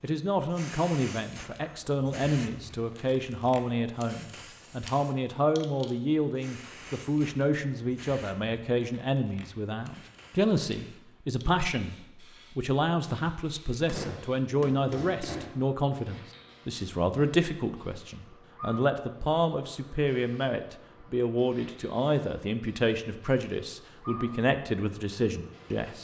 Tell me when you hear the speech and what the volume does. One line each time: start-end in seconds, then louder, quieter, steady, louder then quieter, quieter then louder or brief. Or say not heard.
0.0-25.9 steady.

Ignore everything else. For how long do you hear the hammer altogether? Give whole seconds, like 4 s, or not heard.
2 s.